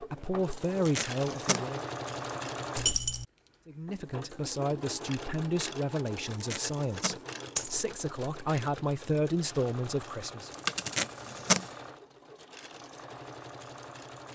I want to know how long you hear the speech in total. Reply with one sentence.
You can hear the speech for 9 seconds altogether.